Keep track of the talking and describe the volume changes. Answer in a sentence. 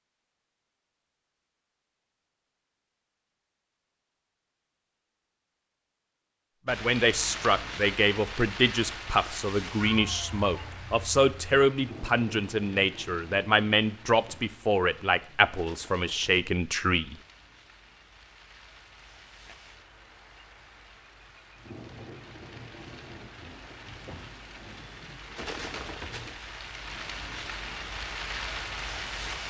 The volume of the talking stays about the same.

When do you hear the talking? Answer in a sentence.
The talking can be heard from 6.7 to 17.1 s.